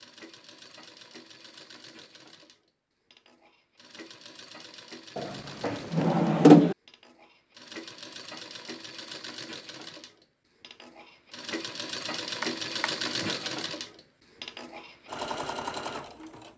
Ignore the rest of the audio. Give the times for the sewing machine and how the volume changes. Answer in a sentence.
The sewing machine can be heard from 0.0 to 16.5 s, getting louder.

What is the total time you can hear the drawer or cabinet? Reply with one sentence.
You can hear the drawer or cabinet for 3 seconds altogether.